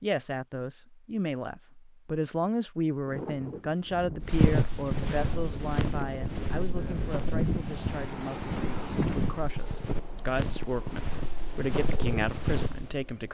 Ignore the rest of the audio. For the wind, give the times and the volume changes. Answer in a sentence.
You can hear the wind from 3.0 to 13.3 s, getting louder then quieter.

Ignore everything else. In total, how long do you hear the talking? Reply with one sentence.
You can hear the talking for 13 seconds altogether.